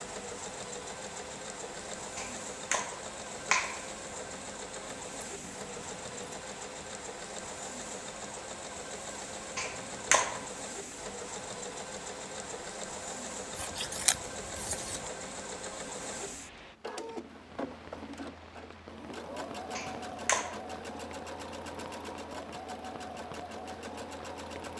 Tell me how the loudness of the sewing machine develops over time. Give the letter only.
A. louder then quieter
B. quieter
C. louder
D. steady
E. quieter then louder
D.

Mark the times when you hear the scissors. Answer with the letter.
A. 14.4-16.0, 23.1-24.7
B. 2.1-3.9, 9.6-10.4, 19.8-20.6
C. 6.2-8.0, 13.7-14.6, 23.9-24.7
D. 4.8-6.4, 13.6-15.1
D.